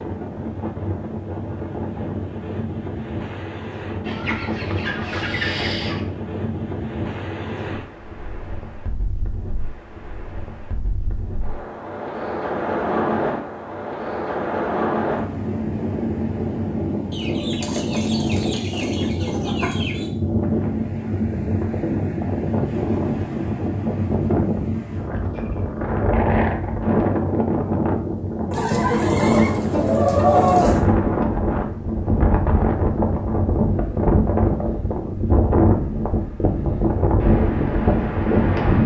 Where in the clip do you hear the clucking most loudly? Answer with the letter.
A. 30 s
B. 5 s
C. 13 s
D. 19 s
A.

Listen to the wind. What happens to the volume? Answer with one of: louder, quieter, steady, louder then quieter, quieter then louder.
louder.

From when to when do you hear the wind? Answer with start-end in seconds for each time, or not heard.
0.0-38.8.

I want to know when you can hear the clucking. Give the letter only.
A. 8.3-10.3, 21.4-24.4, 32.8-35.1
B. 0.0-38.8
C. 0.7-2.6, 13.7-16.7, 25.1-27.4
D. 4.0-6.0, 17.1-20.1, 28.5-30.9
D.